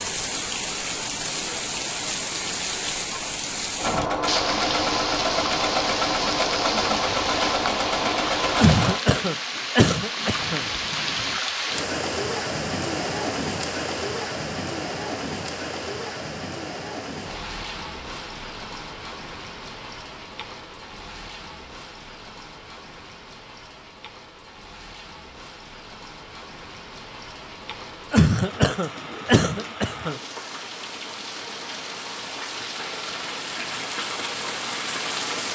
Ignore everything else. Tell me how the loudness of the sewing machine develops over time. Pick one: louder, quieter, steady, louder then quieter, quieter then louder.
steady.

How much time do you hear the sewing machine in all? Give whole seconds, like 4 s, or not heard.
5 s.